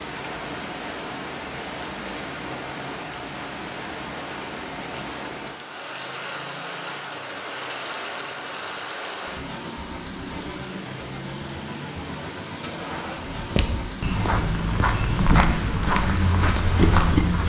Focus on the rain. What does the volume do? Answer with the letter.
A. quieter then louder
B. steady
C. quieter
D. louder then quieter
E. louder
B.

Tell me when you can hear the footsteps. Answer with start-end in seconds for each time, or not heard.
13.2-17.4.